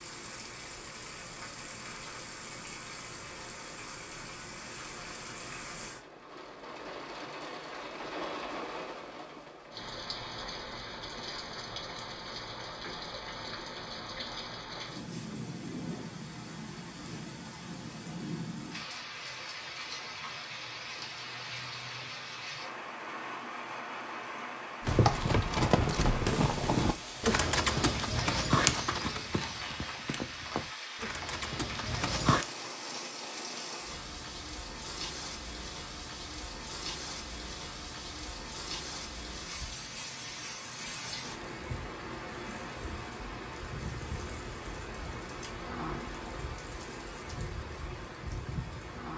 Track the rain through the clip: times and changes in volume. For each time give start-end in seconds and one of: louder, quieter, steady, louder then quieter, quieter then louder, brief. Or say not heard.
0.0-49.1 steady.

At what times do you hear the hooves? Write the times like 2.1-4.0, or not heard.
24.8-32.5.